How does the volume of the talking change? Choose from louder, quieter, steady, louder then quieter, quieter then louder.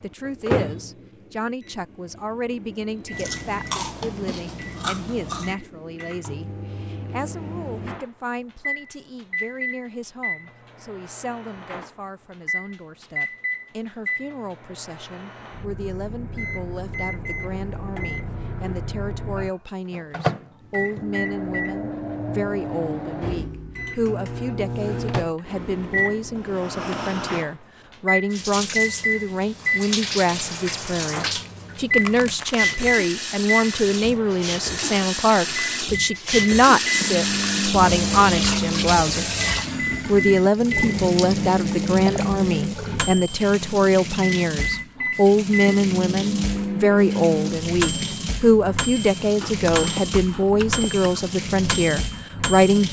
louder.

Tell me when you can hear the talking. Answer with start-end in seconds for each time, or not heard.
0.0-39.3, 40.0-52.8.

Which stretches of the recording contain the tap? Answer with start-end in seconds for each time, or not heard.
28.3-52.8.